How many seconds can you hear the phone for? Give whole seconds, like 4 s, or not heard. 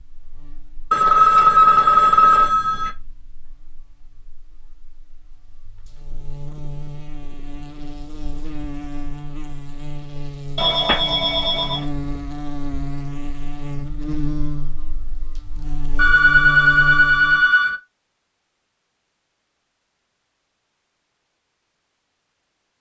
5 s.